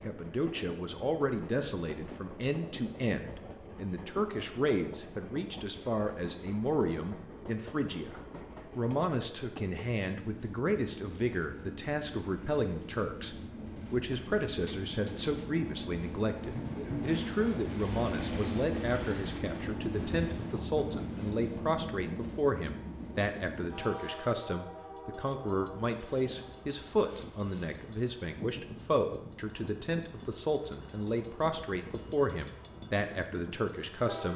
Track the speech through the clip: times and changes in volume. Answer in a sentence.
You can hear the speech from 0.0 to 34.3 s, at a steady volume.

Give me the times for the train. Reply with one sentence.
The train can be heard from 0.0 to 34.3 s.